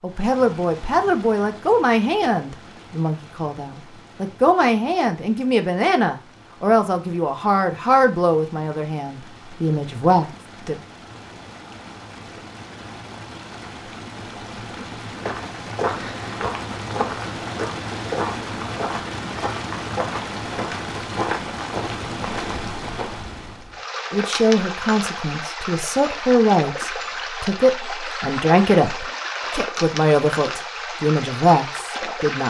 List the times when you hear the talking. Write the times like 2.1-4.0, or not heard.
0.0-10.8, 24.1-32.4.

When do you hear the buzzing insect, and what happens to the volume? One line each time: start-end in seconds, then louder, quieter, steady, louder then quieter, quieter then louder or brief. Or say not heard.
not heard.